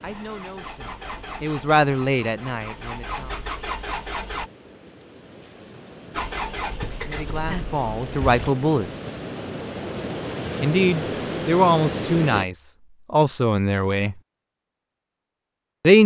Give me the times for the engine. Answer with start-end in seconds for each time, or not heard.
0.0-4.5, 6.1-8.5.